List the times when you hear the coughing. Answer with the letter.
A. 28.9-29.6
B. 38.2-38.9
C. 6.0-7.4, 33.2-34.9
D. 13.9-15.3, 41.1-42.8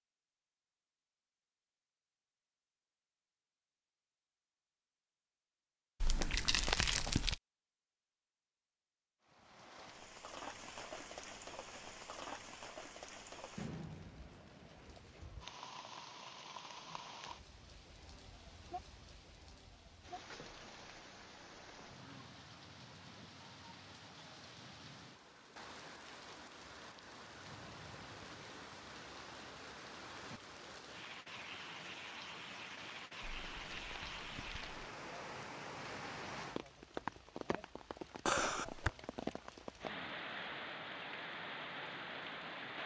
B.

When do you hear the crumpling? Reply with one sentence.
You can hear the crumpling from 6.0 to 7.4 s and from 33.2 to 34.9 s.